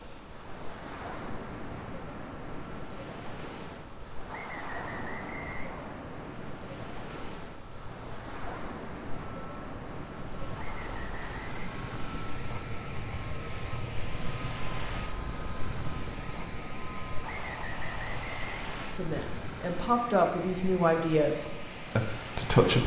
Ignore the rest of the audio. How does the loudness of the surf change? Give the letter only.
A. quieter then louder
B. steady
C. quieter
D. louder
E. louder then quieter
B.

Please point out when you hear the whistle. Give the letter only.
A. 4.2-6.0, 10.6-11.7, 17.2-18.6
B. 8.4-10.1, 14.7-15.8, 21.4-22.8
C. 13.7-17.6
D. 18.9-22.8
A.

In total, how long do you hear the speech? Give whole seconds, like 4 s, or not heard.
4 s.